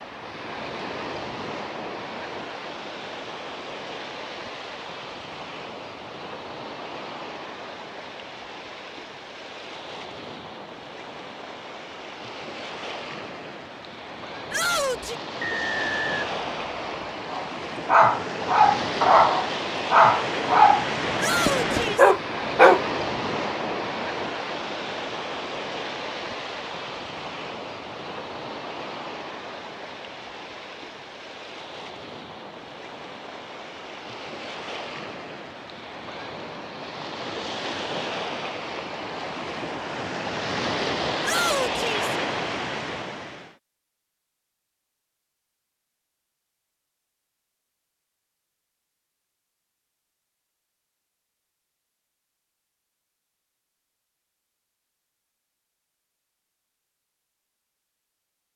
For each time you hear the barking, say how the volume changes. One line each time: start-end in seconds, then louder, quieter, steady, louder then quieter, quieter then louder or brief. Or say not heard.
17.3-22.8 steady.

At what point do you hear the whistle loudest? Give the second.
16 s.